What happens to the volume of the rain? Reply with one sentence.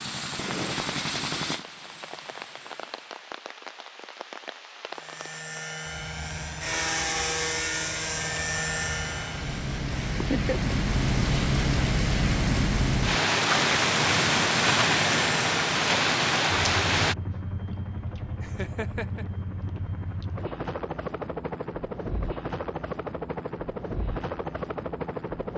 The loudness of the rain goes up.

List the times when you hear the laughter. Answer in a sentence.
You can hear the laughter from 10.2 to 10.8 s and from 18.4 to 19.2 s.